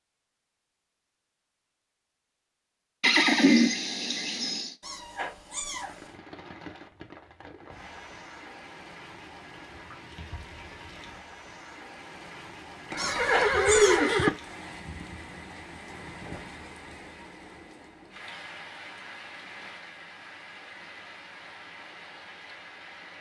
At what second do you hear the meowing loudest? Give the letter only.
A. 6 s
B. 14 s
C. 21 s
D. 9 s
B.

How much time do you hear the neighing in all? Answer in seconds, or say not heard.
3 s.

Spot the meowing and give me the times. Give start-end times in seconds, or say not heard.
4.8-6.2, 12.9-14.1.